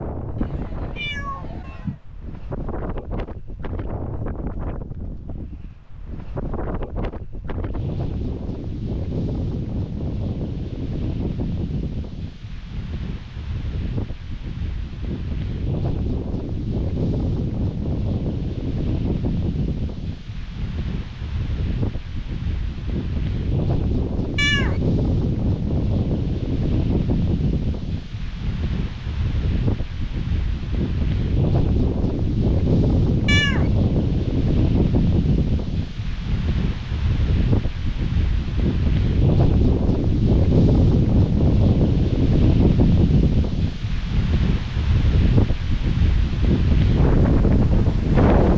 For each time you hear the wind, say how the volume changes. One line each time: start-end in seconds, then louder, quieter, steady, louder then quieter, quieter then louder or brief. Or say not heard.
0.0-48.5 louder.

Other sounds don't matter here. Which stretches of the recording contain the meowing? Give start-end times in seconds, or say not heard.
0.3-2.0, 24.4-24.8, 33.2-33.7.